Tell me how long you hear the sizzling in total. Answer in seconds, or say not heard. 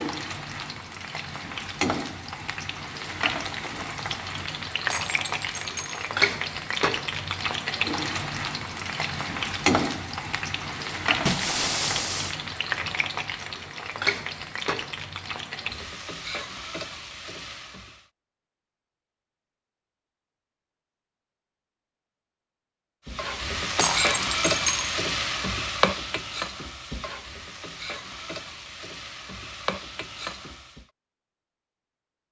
26 s.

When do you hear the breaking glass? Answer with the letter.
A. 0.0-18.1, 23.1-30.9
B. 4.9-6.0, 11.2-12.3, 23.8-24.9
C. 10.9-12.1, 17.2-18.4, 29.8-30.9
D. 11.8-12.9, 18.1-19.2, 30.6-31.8
B.